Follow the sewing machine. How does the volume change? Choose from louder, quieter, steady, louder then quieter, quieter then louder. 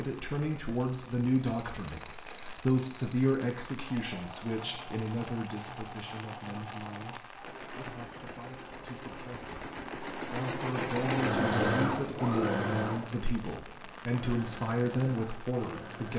louder then quieter.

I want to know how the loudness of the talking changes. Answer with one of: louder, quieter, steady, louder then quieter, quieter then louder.
quieter then louder.